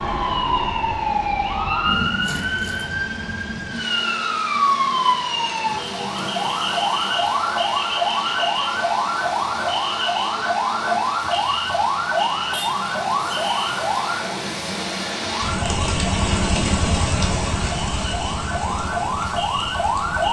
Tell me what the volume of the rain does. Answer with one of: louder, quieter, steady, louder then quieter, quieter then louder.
louder.